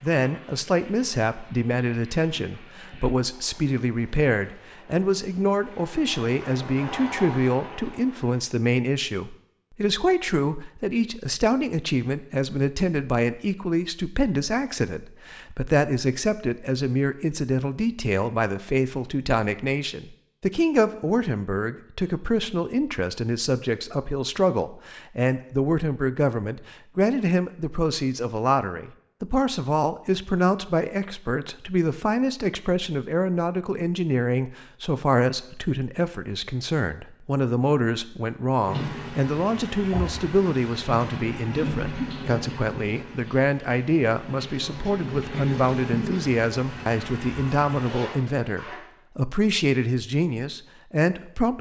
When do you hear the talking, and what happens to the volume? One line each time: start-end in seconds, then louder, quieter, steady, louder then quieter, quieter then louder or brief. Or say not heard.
0.0-51.5 steady.